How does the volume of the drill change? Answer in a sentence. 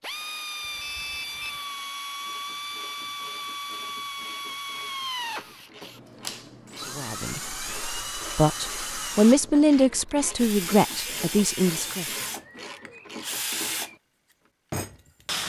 The loudness of the drill stays about the same.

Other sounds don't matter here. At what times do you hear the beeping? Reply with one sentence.
You can hear the beeping from 0.6 to 1.6 s.